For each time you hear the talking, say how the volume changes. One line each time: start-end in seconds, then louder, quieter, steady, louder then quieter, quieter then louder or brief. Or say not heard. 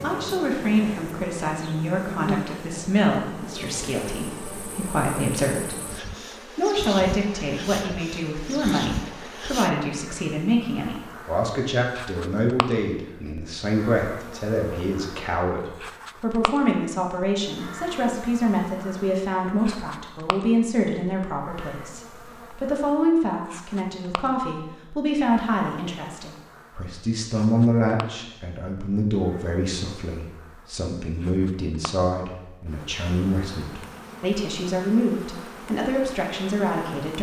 0.0-37.1 steady.